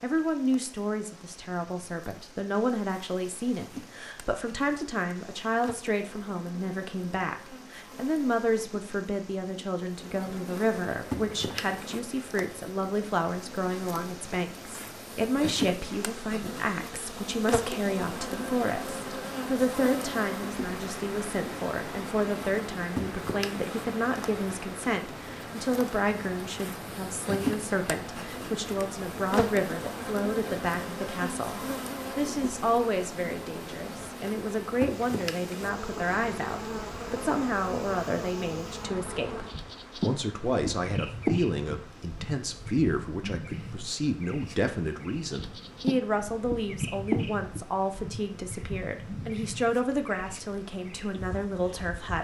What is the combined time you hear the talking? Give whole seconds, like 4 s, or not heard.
52 s.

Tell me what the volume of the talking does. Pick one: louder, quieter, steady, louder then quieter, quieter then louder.
steady.